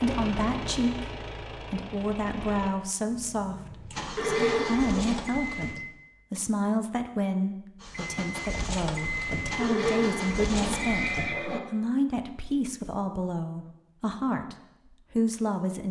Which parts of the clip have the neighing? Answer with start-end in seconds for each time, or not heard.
4.2-5.2, 9.6-11.6.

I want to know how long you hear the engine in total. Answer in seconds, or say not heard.
9 s.